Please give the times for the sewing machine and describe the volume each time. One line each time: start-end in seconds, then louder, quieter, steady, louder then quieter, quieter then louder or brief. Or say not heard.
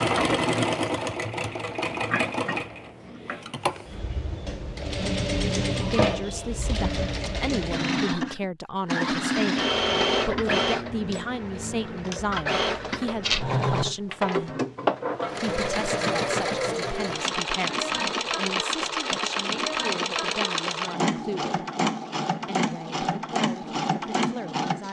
0.0-24.8 steady.